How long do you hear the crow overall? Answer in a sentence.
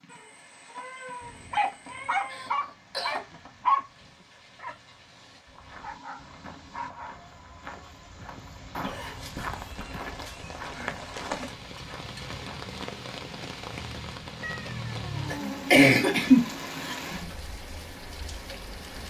The crow can't be heard in this clip.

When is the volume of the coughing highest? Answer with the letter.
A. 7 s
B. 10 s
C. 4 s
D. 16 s
D.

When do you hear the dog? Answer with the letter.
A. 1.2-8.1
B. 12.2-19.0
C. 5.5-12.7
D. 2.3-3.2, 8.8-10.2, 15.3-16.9
A.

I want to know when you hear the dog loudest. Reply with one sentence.
The volume of the dog peaks at 4 seconds.